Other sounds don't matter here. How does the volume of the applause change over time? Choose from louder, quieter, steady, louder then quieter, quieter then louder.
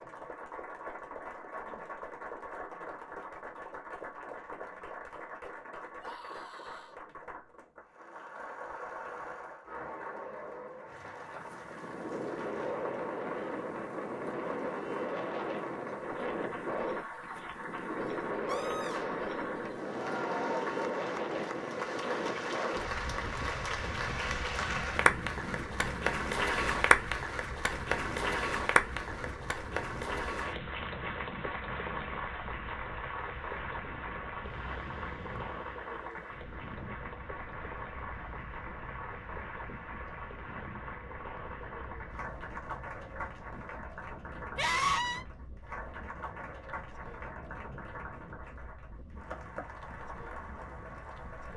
louder then quieter.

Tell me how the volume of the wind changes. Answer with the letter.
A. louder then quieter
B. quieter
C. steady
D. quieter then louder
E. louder
B.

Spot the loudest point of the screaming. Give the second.
45 s.